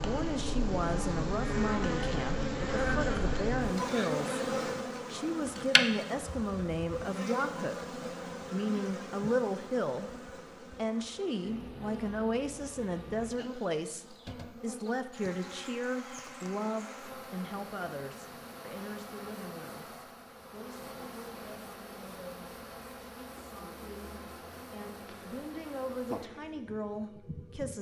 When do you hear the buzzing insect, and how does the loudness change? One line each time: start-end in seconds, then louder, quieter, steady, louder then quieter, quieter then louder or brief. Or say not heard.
0.0-27.7 quieter.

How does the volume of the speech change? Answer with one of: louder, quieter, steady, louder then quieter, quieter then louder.
quieter.